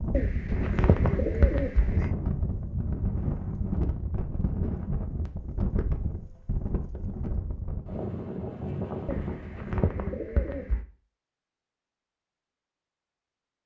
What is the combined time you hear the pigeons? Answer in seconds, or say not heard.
4 s.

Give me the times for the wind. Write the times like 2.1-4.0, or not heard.
0.0-9.8.